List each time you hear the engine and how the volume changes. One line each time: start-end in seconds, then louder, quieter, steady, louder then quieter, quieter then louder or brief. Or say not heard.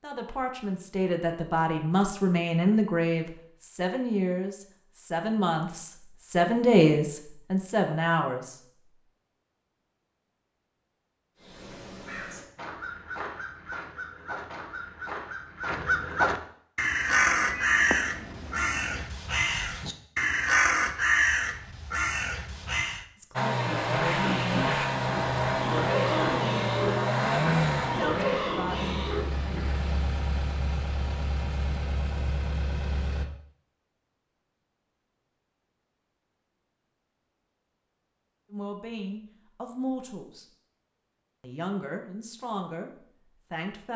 23.3-33.2 quieter.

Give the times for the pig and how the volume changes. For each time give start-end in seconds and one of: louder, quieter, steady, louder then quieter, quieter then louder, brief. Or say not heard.
23.6-29.9 steady.